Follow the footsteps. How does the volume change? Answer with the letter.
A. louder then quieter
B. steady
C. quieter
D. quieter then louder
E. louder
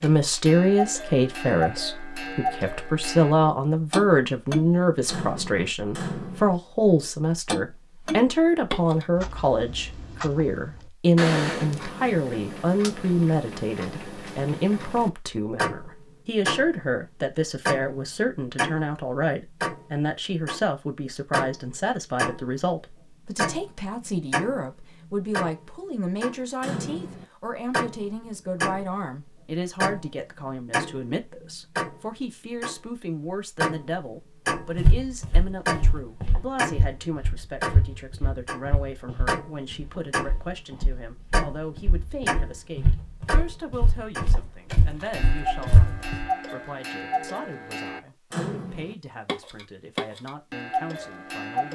D.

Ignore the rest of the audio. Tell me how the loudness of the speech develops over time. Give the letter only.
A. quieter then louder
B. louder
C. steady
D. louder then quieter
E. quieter
E.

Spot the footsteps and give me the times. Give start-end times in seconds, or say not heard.
34.8-46.2.